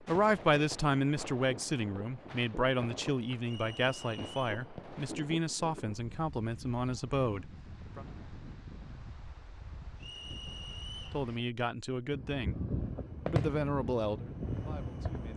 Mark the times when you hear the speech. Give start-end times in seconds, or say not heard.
0.0-8.1, 11.1-12.6, 13.2-15.3.